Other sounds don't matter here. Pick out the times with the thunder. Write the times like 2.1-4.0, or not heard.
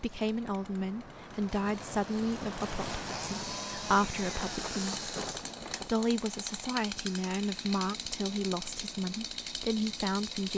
3.9-5.9.